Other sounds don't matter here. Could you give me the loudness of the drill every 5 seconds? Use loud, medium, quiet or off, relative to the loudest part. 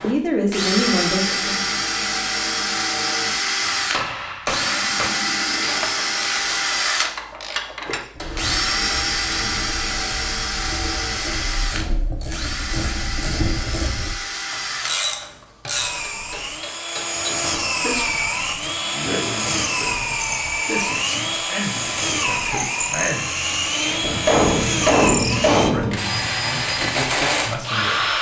loud, loud, medium, loud, loud, loud.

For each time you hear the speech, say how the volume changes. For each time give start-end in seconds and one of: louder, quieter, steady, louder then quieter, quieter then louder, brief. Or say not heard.
0.0-1.6 brief
17.2-28.1 steady.